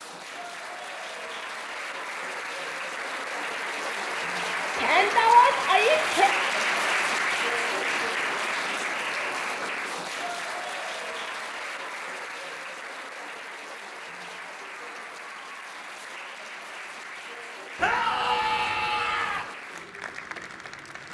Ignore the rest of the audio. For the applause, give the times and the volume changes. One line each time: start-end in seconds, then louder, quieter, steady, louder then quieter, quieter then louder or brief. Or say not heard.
0.0-21.0 louder then quieter.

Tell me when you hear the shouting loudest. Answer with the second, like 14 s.
5 s.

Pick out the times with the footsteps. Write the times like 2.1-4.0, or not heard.
not heard.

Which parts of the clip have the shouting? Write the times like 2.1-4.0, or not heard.
4.8-6.3, 17.8-19.4.